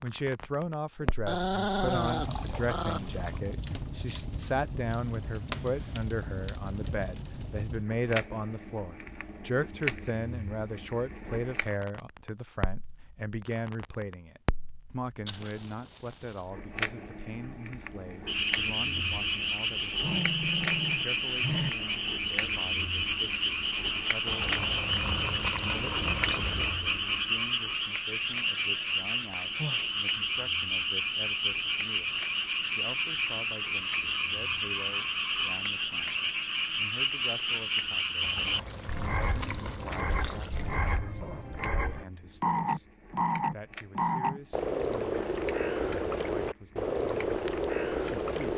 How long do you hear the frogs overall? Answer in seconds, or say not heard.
30 s.